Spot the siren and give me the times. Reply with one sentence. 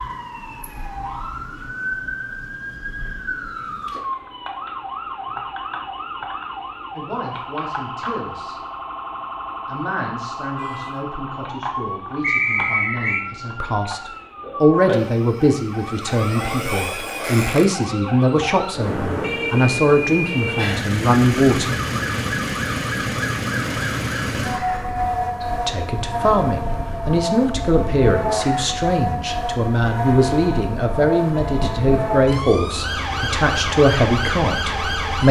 The siren can be heard from 0.0 to 35.2 s.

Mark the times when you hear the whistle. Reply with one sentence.
The whistle can be heard from 12.2 to 13.2 s.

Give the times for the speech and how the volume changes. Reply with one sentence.
The speech can be heard briefly from 7.0 to 8.6 s; from 9.7 to 21.8 s, getting louder; and from 25.6 to 35.2 s, at a steady volume.